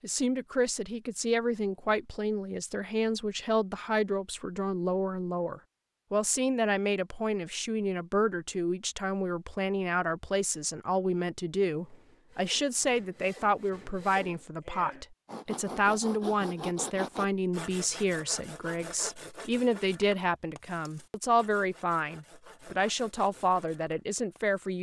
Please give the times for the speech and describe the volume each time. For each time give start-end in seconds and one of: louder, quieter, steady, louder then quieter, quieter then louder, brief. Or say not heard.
0.0-24.7 steady.